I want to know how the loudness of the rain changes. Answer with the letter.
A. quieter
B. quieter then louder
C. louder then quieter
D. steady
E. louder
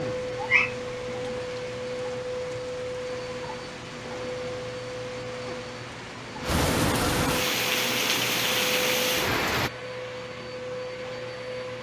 E.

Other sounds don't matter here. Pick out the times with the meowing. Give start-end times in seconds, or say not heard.
0.3-1.3.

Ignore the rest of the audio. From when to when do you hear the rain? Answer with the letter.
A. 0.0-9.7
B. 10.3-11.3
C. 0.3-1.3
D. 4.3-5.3
A.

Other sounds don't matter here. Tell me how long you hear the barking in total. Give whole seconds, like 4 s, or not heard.
not heard.